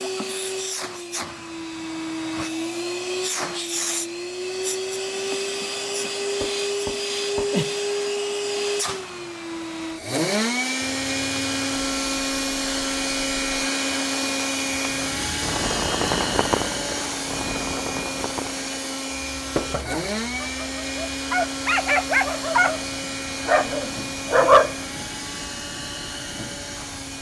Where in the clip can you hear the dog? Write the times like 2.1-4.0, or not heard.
19.9-22.8, 23.4-24.8.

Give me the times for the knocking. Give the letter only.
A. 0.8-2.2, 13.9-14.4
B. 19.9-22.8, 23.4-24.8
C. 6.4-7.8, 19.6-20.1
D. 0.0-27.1
C.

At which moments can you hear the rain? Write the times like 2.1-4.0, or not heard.
10.8-27.1.